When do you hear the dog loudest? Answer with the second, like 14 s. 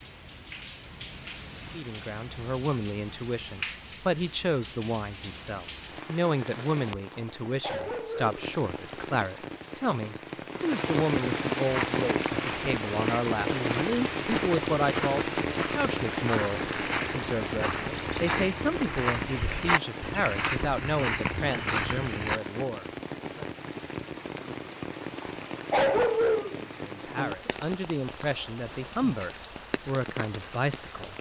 26 s.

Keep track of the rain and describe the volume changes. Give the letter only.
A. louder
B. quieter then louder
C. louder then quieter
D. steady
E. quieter
C.